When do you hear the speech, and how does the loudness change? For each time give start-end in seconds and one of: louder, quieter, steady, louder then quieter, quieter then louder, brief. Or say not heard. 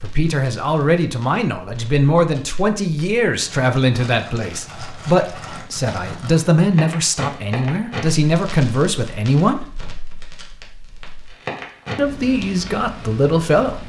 0.0-9.8 steady
11.9-13.8 brief.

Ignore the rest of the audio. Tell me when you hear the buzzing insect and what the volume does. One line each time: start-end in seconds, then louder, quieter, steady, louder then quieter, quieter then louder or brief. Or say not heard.
not heard.